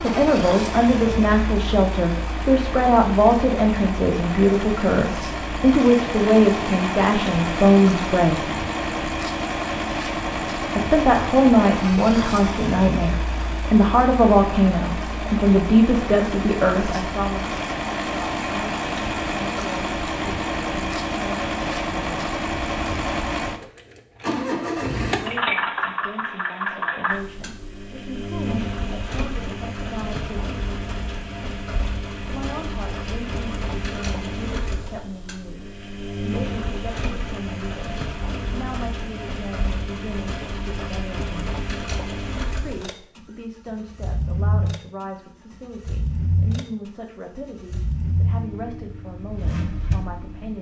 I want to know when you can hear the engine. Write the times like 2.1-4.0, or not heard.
0.0-50.5.